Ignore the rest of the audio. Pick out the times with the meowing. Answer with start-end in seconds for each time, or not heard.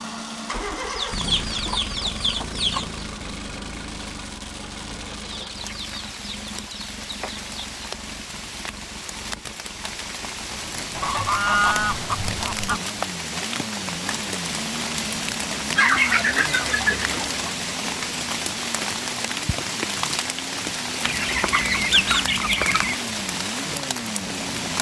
not heard.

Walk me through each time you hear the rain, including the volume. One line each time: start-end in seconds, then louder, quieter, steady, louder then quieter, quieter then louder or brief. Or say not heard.
0.0-24.7 louder.